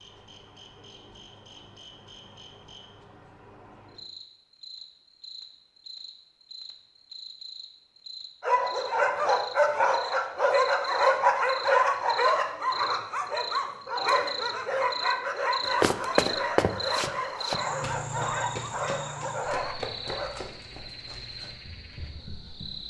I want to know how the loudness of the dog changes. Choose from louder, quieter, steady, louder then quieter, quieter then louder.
quieter.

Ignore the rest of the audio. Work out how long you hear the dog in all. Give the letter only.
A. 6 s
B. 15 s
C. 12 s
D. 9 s
C.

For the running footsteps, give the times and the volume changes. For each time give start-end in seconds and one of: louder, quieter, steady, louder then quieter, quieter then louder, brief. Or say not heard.
15.7-22.8 quieter.